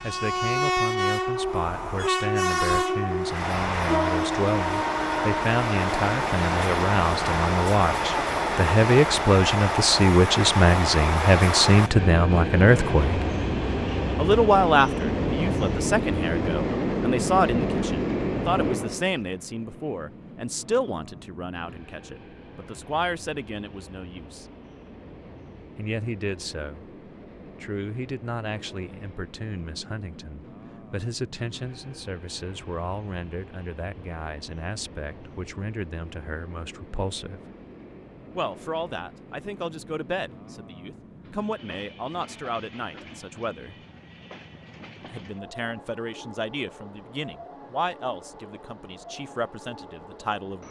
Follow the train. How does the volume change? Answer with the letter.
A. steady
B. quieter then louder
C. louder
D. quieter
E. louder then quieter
D.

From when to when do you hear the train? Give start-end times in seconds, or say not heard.
0.0-50.6.